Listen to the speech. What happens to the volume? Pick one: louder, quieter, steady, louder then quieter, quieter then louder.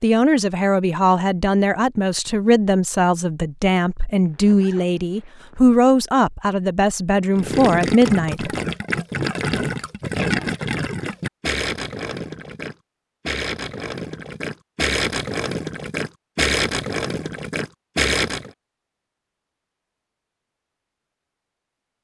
steady.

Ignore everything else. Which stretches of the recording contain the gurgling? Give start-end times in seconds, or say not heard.
7.3-18.5.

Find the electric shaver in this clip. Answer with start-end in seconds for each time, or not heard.
not heard.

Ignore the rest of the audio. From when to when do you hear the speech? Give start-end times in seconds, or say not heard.
0.0-8.5.